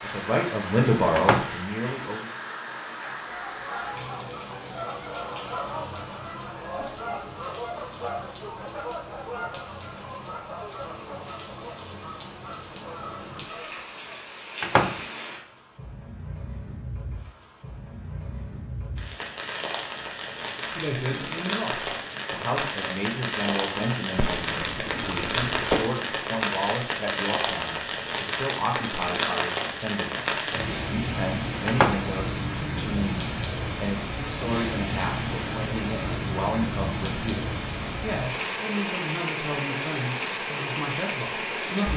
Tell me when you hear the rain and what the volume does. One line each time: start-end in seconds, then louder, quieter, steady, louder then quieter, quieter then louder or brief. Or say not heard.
0.0-41.9 louder.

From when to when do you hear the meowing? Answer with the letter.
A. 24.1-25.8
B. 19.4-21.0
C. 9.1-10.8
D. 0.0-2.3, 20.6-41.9
A.